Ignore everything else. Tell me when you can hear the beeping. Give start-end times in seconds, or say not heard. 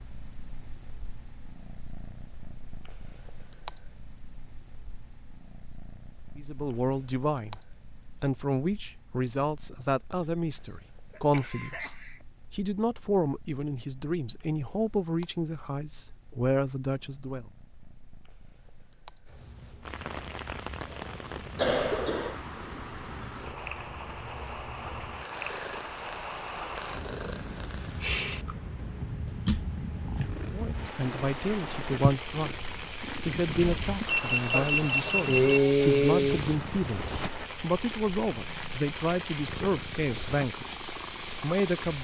34.0-35.6.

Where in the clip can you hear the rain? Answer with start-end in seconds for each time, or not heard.
19.8-41.9.